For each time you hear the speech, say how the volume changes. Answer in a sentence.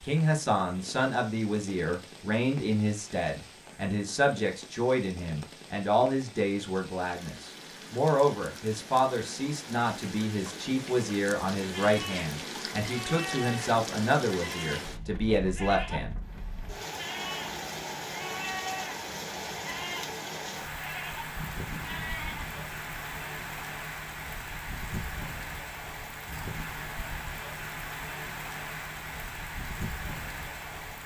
The speech can be heard from 0.0 to 16.1 s, at a steady volume.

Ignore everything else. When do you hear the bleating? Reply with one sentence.
The bleating can be heard from 11.6 to 22.6 s.